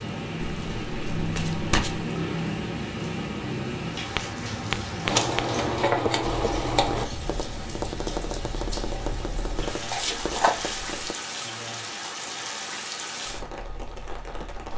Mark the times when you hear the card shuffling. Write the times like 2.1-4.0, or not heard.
0.4-2.0, 5.0-7.0, 9.9-11.2.